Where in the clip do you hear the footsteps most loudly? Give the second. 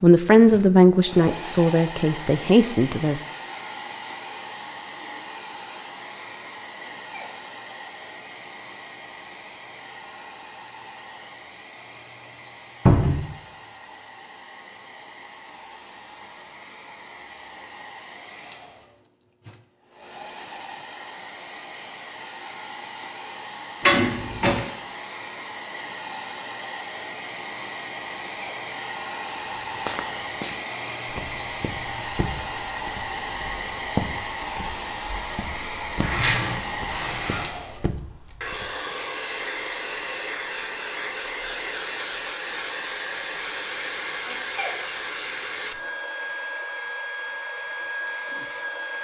34 s.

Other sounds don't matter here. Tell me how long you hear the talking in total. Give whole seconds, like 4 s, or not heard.
3 s.